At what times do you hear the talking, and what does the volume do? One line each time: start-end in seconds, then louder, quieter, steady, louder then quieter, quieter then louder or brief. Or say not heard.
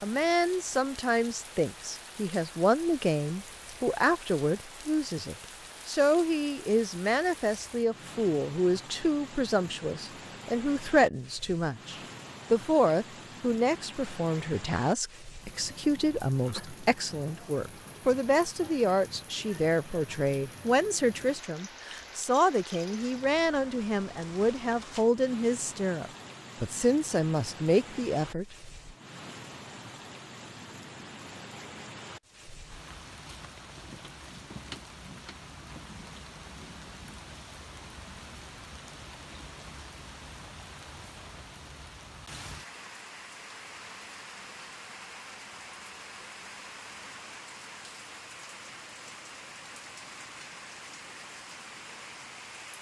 0.0-28.6 steady.